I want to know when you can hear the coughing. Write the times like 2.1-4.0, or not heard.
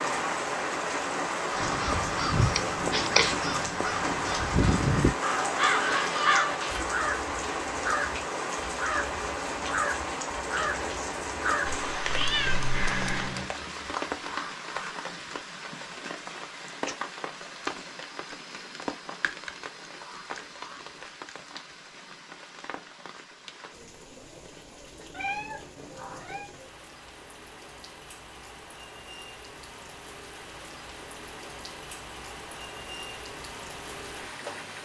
not heard.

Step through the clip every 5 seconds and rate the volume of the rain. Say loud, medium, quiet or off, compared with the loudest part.
loud, loud, loud, medium, quiet, quiet, medium.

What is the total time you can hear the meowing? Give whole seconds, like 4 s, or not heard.
4 s.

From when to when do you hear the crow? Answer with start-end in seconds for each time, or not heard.
1.5-13.4.